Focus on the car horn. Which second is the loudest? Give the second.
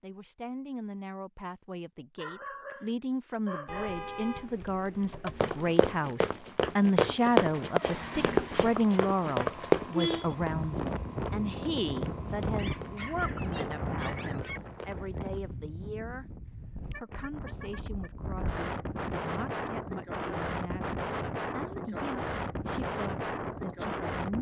10 s.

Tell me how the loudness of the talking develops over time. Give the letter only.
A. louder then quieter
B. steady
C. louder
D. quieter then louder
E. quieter
A.